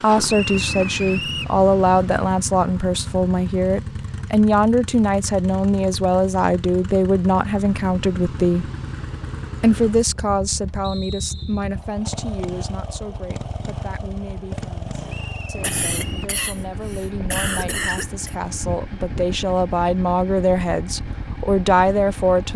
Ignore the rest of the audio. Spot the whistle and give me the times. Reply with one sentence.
You can hear the whistle from 0.2 to 1.6 s, from 10.8 to 11.7 s and from 15.1 to 16.4 s.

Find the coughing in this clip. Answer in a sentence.
The coughing can be heard from 15.6 to 18.4 s.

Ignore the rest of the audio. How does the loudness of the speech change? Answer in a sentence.
The loudness of the speech goes down, then up.